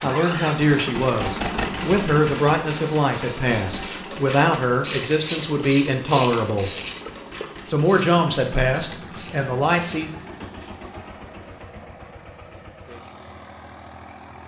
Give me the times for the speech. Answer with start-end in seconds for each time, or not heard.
0.0-6.7, 7.7-10.1.